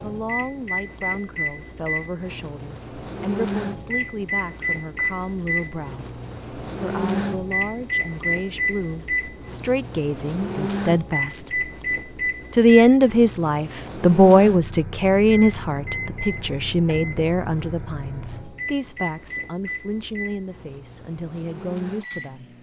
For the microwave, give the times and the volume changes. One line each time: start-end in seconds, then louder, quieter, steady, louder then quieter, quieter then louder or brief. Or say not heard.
0.0-22.5 quieter.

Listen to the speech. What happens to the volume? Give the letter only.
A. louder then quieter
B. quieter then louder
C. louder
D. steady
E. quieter
A.